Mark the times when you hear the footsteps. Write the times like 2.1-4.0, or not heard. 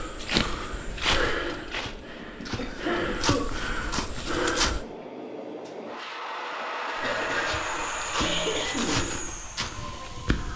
0.0-4.8, 6.9-10.5.